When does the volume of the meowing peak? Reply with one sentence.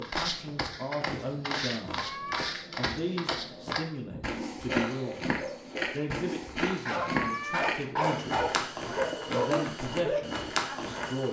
The loudest moment of the meowing is at 7 seconds.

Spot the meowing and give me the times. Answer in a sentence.
You can hear the meowing from 1.9 to 2.5 s and from 7.0 to 7.8 s.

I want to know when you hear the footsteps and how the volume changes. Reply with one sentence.
You can hear the footsteps from 0.0 to 11.2 s, at a steady volume.